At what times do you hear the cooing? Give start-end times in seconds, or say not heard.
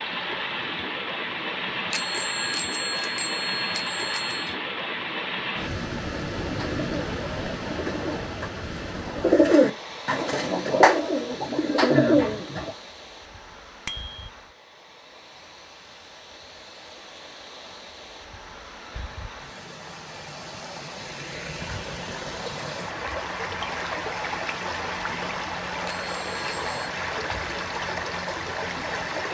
6.4-12.7.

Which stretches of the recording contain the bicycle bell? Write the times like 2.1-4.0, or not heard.
1.9-4.5, 13.8-14.3, 25.9-26.9.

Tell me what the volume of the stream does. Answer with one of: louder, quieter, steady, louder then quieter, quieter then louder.
quieter then louder.